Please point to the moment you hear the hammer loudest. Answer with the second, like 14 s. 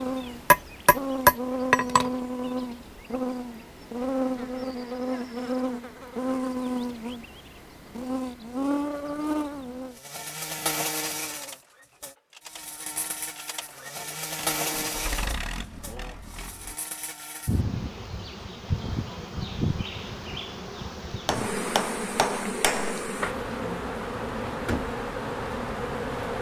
1 s.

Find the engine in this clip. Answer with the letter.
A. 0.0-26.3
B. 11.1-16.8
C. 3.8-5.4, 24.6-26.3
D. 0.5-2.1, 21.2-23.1
B.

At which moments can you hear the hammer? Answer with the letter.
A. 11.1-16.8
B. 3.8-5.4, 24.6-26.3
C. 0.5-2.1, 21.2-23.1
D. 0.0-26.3
C.